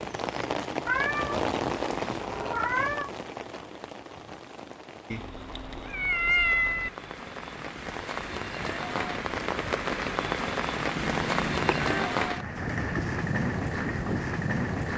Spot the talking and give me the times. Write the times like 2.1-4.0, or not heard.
not heard.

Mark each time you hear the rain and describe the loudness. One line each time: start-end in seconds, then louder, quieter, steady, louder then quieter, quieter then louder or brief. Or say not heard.
0.0-14.9 quieter then louder.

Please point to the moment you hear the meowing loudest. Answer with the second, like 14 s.
6 s.